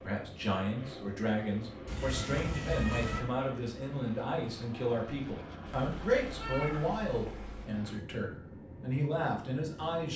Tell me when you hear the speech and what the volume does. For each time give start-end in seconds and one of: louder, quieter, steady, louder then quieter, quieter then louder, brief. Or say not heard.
0.0-10.1 steady.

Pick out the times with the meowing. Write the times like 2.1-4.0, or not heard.
1.9-3.2, 5.7-7.7.